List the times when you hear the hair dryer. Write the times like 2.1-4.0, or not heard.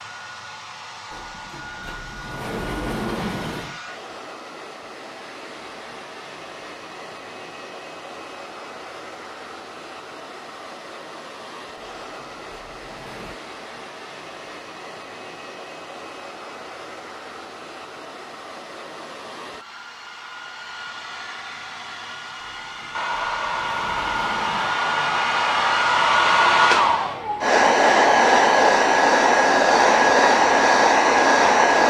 0.0-31.8.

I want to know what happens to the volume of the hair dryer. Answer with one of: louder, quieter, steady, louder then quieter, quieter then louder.
louder.